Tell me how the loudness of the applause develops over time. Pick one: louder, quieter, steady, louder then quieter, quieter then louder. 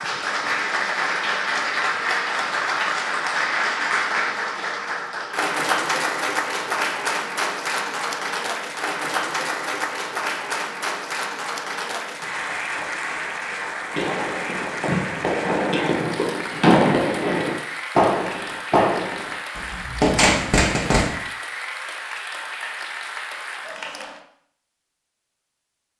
quieter.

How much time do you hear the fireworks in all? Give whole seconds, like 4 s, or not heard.
7 s.